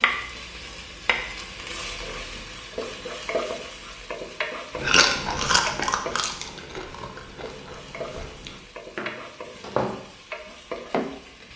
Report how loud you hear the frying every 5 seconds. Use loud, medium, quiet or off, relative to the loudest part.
loud, medium, medium.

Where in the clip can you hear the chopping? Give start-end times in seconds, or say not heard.
8.9-10.1, 10.8-11.5.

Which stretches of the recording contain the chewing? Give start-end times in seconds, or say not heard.
4.8-8.7.